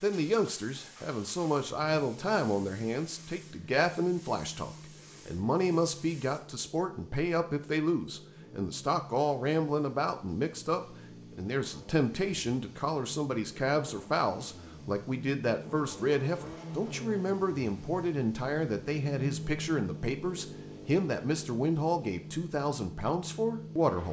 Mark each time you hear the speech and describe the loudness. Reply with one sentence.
You can hear the speech from 0.0 to 24.0 s, at a steady volume.